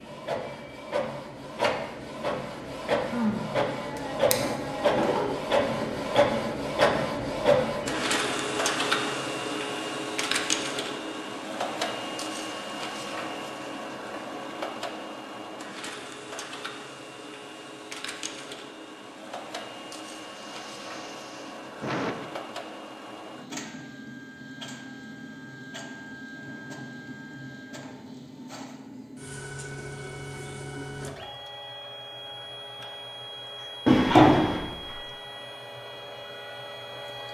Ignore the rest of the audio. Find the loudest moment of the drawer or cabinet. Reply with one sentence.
The loudest moment of the drawer or cabinet is at 34 seconds.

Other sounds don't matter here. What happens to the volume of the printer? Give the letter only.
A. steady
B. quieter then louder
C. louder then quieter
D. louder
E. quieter
E.